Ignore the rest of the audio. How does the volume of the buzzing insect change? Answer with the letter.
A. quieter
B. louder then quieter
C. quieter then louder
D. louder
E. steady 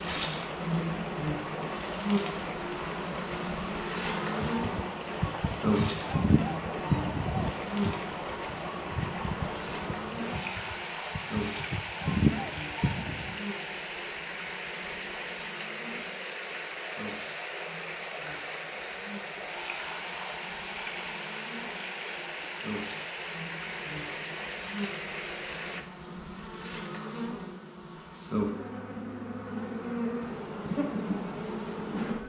C.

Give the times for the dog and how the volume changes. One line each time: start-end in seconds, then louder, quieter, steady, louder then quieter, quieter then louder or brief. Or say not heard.
not heard.